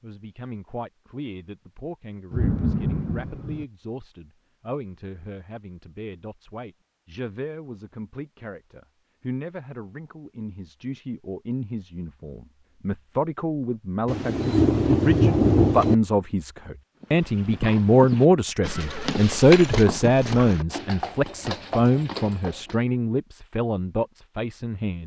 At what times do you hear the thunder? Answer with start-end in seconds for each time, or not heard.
2.3-3.6, 14.1-15.9.